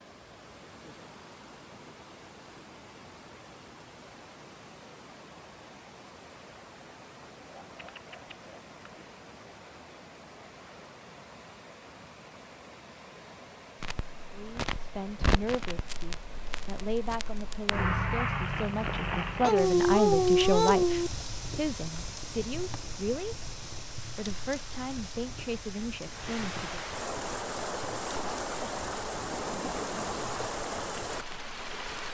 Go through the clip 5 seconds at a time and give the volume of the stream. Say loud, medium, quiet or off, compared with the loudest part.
quiet, quiet, quiet, quiet, quiet, loud, loud.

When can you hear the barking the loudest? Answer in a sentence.
The volume of the barking peaks at 20 seconds.